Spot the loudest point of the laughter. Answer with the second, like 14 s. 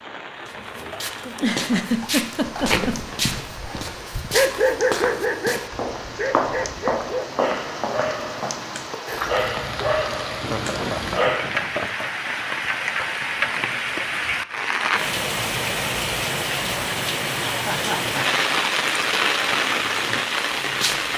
2 s.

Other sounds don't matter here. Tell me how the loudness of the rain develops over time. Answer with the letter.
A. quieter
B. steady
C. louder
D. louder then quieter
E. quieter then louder
C.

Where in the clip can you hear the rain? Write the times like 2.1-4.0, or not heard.
0.0-21.1.